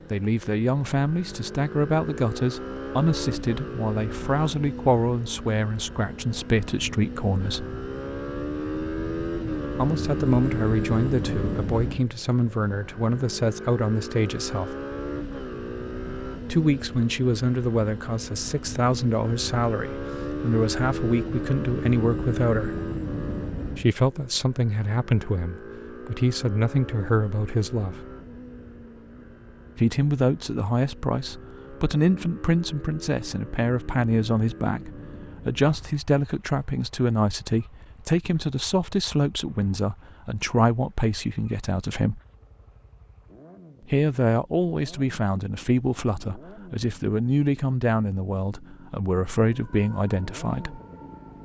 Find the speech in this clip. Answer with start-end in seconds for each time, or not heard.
0.1-7.7, 9.8-14.8, 16.4-22.7, 23.8-28.0, 29.8-42.2, 43.9-50.8.